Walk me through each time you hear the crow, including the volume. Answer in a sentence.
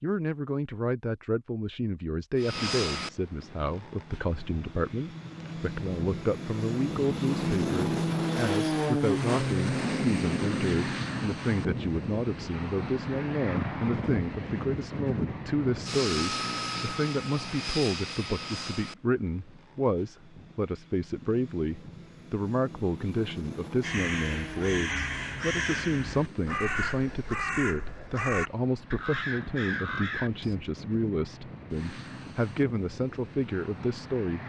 You can hear the crow from 23.8 to 30.6 s, at a steady volume.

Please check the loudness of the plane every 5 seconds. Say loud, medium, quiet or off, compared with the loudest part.
medium, loud, loud, medium, quiet, quiet, quiet.